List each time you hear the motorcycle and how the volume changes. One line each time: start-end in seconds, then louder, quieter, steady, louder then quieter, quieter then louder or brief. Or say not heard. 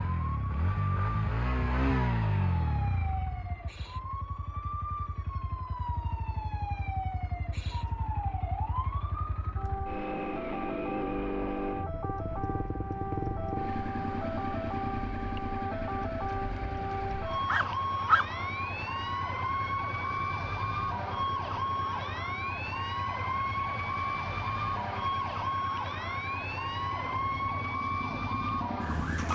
0.0-29.3 quieter.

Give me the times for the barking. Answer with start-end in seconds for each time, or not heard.
17.4-18.2.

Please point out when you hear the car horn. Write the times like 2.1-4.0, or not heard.
not heard.